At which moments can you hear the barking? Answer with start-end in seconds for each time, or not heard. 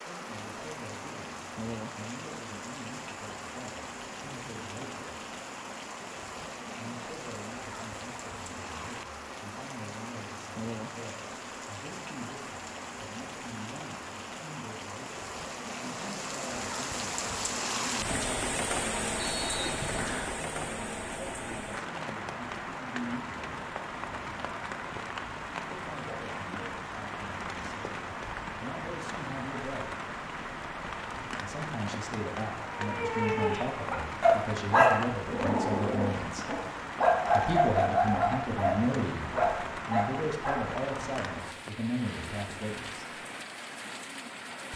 32.6-40.6.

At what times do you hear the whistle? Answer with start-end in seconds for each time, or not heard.
19.2-20.3.